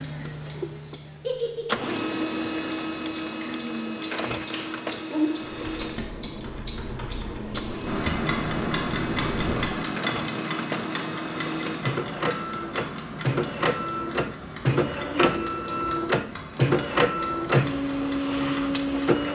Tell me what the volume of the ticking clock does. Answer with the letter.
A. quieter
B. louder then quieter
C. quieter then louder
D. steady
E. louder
B.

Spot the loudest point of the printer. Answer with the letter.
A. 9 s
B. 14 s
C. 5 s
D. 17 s
D.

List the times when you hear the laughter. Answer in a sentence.
You can hear the laughter from 1.2 to 2.0 s.